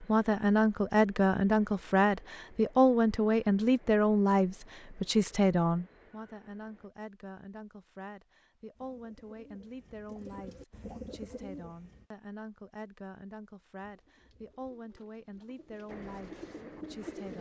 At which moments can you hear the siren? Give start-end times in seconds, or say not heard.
not heard.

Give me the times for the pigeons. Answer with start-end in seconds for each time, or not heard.
8.8-12.1, 13.8-17.3.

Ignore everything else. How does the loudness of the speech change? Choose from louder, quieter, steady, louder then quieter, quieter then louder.
quieter.